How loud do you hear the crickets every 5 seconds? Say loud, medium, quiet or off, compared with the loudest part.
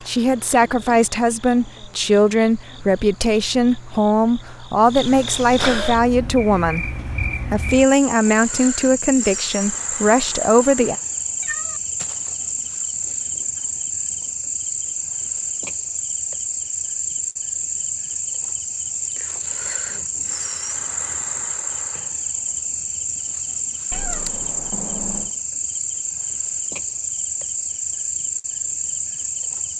quiet, loud, loud, loud, loud, loud.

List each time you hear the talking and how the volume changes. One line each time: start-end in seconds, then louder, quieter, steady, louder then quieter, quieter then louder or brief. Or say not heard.
0.1-10.9 steady.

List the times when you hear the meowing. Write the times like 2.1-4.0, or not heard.
11.4-12.3, 23.9-25.3.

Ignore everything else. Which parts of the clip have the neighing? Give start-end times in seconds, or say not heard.
not heard.